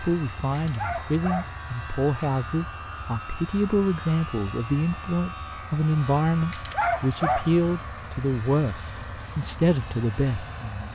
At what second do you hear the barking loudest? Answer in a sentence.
The loudest moment of the barking is at 7 seconds.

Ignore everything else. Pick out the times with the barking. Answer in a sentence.
You can hear the barking from 0.6 to 1.6 s and from 6.5 to 7.5 s.